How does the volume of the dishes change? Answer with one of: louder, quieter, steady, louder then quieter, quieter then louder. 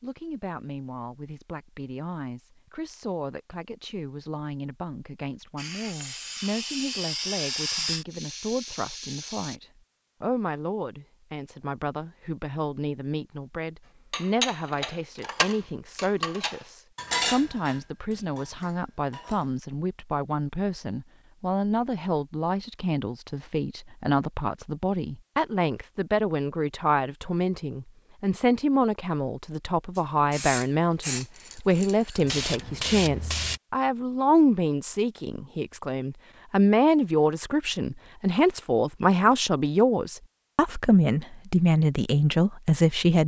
louder then quieter.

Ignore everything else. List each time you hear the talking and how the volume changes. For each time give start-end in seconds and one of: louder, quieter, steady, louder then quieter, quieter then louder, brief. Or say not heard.
0.0-43.2 louder.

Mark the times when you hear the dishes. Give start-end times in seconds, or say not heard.
14.1-19.5.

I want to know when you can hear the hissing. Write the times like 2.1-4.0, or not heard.
5.5-9.6, 29.9-33.6.